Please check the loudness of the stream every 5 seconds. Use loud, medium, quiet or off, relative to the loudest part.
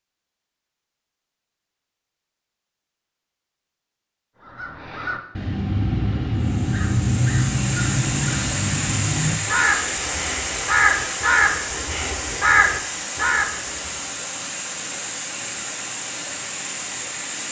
off, loud, loud, loud.